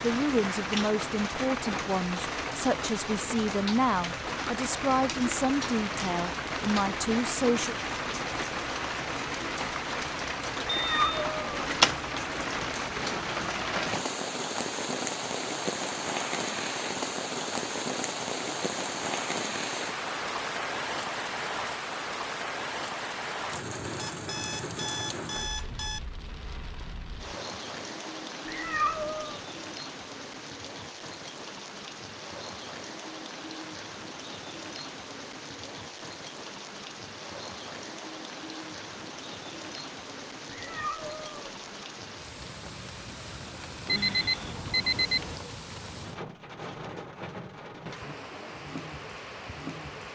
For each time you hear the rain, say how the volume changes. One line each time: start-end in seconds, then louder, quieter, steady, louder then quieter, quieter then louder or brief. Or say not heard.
0.0-50.1 quieter.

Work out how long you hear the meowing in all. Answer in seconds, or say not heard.
3 s.